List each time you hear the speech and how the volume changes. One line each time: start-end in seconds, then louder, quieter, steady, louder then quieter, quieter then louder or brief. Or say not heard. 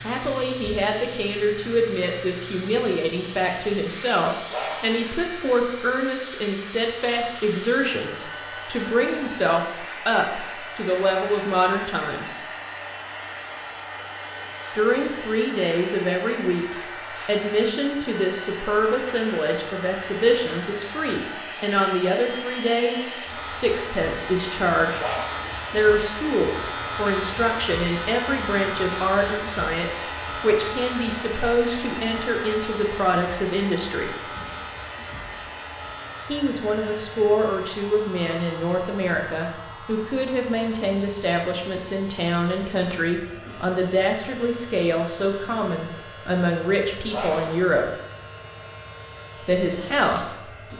0.0-12.4 steady
14.7-25.1 steady
25.7-34.1 steady
36.2-47.9 steady
49.5-50.4 brief.